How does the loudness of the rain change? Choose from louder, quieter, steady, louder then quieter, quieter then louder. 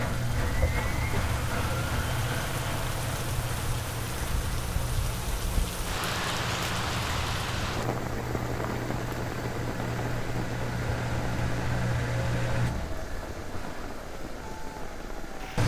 louder then quieter.